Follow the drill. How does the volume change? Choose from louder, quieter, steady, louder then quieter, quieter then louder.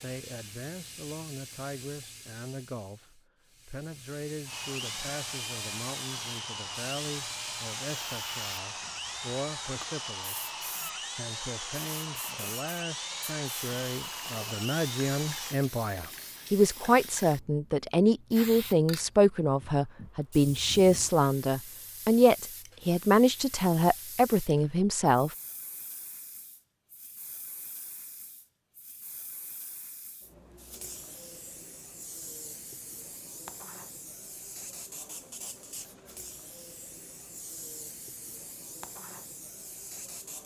steady.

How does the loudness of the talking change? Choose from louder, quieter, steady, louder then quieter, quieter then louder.
louder.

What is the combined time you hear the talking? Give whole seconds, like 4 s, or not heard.
25 s.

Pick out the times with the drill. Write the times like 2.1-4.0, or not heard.
4.5-15.6.